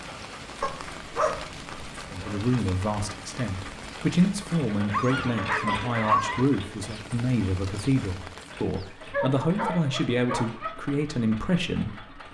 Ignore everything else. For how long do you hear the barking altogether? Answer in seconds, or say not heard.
5 s.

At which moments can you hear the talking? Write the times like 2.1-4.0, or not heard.
2.0-12.2.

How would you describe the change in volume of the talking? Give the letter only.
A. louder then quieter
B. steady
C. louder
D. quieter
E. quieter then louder
B.